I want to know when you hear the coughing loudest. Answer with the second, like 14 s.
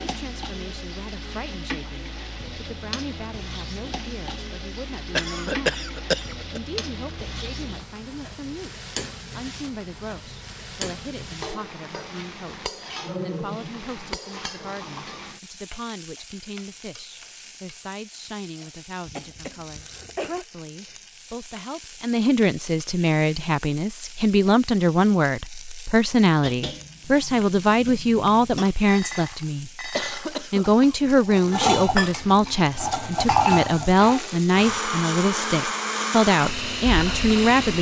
6 s.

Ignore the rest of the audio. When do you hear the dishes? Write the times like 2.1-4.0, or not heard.
26.4-34.8.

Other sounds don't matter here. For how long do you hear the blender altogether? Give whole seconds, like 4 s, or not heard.
6 s.